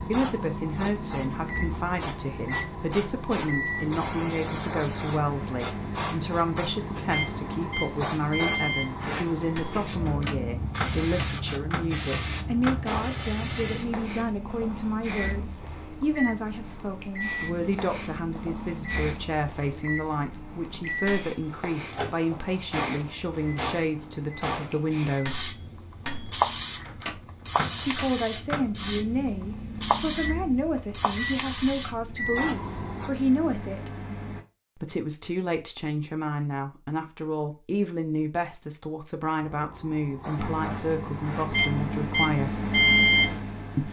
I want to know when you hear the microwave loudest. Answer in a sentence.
The loudest moment of the microwave is at 43 seconds.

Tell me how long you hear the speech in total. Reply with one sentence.
You can hear the speech for 39 seconds altogether.